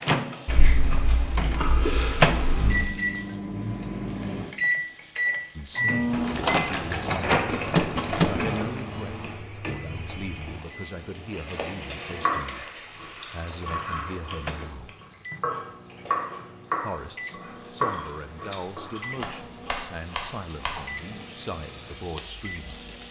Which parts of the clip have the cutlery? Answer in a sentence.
You can't hear the cutlery here.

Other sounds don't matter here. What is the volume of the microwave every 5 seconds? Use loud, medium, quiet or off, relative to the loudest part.
loud, loud, quiet, quiet, quiet.